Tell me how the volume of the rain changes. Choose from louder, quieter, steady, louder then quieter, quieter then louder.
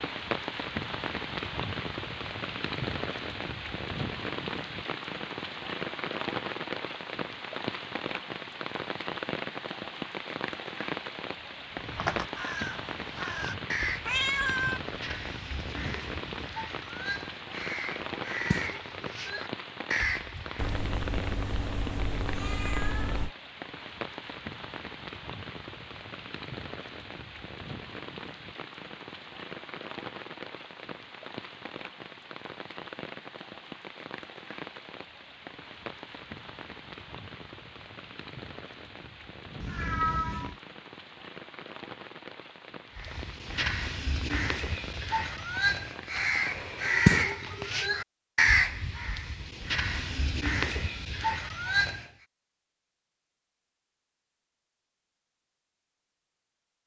quieter.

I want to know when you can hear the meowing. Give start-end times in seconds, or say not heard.
14.1-14.8, 20.6-23.3, 39.6-40.5.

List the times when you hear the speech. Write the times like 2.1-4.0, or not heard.
not heard.